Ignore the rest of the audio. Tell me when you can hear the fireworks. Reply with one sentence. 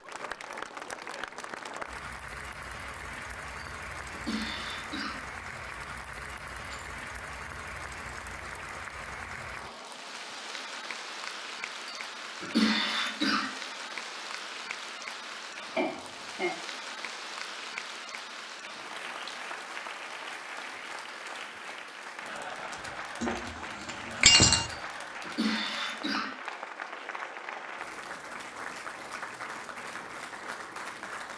The fireworks can't be heard in this clip.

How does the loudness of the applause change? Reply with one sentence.
The volume of the applause stays about the same.